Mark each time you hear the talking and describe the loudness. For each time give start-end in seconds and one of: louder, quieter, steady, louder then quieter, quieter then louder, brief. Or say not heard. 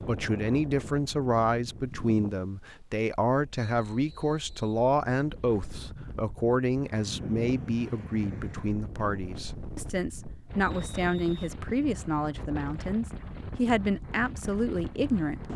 0.1-15.5 steady.